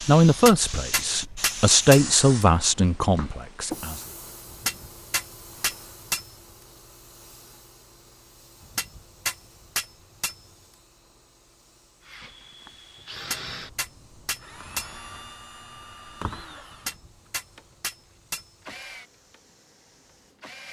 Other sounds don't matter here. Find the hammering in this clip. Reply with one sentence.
You can hear the hammering from 0.3 to 2.5 s, from 4.5 to 6.2 s, from 8.6 to 10.4 s, from 13.2 to 14.9 s and from 16.7 to 18.5 s.